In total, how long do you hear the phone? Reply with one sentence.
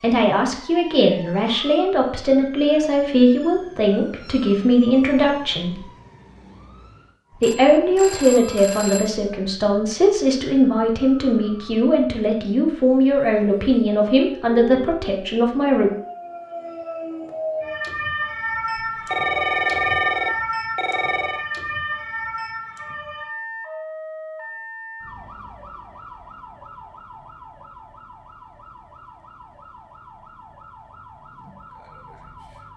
You can hear the phone for 4 seconds altogether.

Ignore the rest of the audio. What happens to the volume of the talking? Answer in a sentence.
The volume of the talking stays about the same.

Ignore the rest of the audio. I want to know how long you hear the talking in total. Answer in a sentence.
You can hear the talking for 14 seconds altogether.